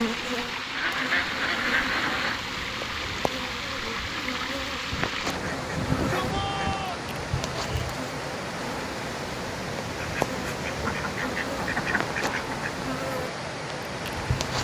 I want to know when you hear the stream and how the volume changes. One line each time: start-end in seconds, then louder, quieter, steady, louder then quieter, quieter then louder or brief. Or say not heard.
0.0-14.5 steady.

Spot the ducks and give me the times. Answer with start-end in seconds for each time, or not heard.
0.8-2.4, 4.9-6.9, 9.9-12.7.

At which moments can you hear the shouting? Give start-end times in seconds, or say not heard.
5.7-7.0.